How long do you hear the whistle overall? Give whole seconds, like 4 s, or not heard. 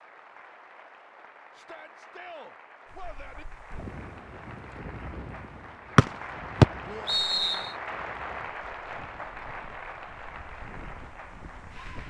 2 s.